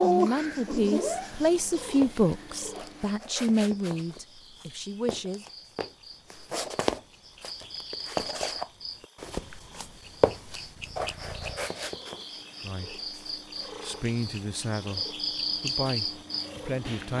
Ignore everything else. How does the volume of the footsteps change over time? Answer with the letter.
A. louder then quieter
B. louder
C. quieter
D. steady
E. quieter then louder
B.